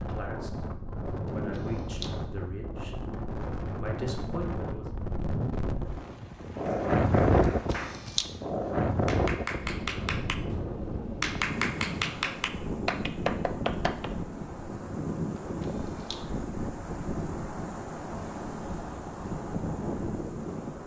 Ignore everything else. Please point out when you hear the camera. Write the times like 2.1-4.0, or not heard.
1.2-2.1, 7.4-8.2, 15.3-16.2.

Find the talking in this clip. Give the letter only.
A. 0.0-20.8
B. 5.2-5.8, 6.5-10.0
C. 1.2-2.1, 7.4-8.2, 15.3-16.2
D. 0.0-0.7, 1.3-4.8
D.